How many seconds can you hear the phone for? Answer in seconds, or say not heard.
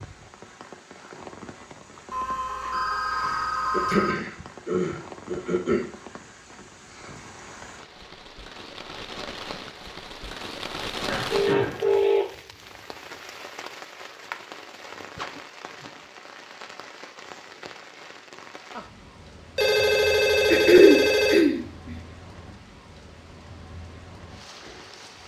5 s.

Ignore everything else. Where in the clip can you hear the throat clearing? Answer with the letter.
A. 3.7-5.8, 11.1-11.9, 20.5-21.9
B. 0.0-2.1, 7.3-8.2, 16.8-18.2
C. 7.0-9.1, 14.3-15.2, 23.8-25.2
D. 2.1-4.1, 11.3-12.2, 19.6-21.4
A.